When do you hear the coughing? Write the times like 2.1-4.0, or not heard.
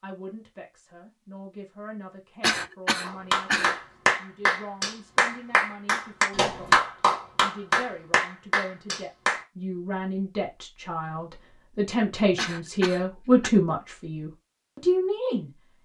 2.4-3.8, 12.3-13.5.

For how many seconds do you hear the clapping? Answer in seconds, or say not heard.
6 s.